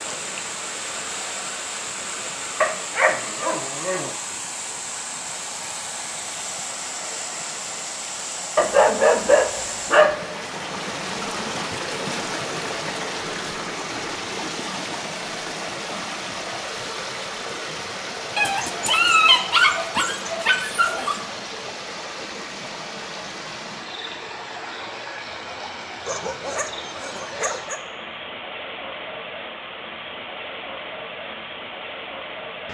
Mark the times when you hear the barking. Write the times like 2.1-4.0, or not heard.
2.6-4.1, 8.6-10.2, 18.4-21.2, 26.1-27.9.